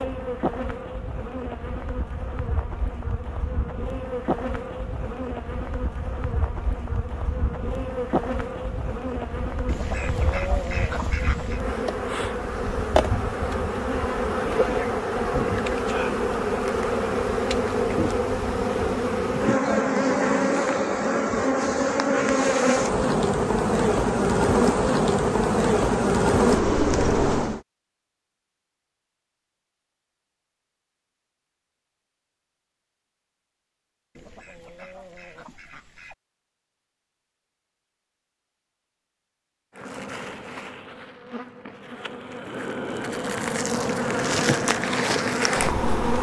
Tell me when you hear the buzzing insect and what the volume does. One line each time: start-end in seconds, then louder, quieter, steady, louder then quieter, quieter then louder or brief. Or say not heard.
0.0-27.6 louder
39.8-46.1 louder.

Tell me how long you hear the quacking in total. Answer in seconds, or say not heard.
4 s.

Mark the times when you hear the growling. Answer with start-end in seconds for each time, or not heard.
not heard.